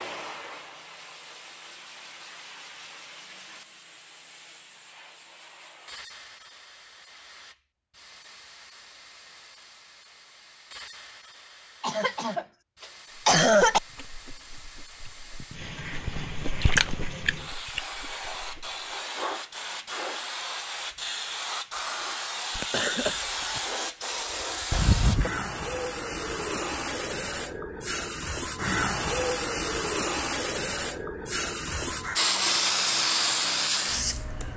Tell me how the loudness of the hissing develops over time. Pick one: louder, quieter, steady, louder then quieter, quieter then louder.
louder.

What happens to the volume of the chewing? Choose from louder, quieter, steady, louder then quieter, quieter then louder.
louder then quieter.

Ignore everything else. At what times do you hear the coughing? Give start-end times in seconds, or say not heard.
11.8-13.8, 22.6-23.6.